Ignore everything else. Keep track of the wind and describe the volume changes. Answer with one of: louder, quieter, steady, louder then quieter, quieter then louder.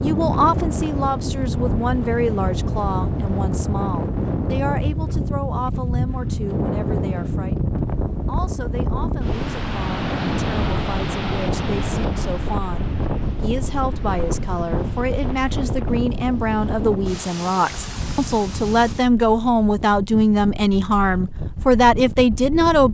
quieter.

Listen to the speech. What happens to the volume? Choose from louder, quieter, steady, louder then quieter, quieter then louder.
quieter then louder.